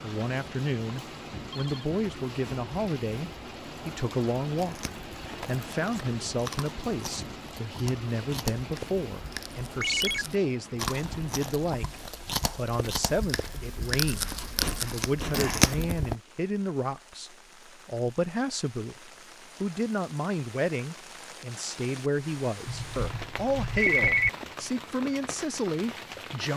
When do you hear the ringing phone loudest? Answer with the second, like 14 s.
24 s.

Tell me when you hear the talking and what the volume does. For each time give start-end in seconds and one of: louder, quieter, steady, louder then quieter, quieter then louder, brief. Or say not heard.
0.0-26.5 steady.